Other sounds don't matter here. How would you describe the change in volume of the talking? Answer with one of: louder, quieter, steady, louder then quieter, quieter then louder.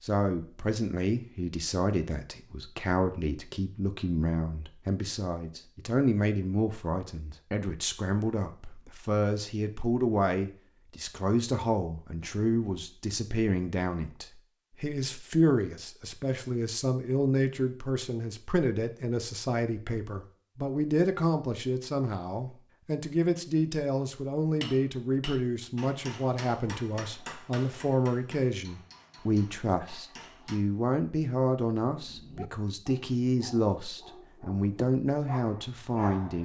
steady.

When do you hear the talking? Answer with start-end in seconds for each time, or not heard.
0.0-36.4.